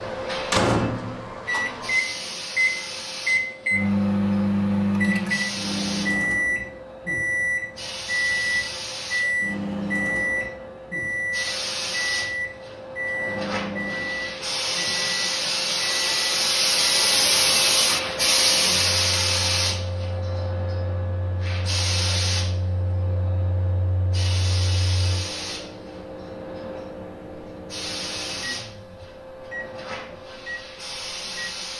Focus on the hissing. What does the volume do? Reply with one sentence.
The volume of the hissing goes up, then down.